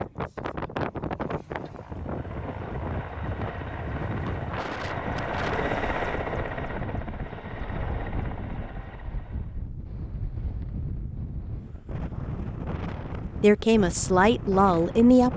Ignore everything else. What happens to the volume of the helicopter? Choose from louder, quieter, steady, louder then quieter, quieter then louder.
louder then quieter.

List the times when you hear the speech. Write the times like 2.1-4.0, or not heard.
13.4-15.3.